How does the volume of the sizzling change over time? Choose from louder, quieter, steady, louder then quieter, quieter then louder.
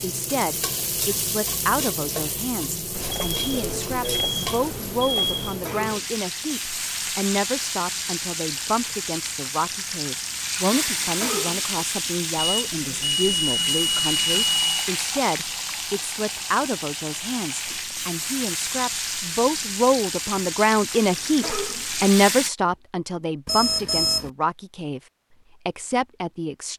steady.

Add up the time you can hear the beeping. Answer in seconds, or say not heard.
6 s.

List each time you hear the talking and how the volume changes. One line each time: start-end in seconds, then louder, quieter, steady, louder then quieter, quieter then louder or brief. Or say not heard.
0.0-25.0 louder
25.6-26.7 brief.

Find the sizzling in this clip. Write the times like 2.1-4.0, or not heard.
0.0-22.5.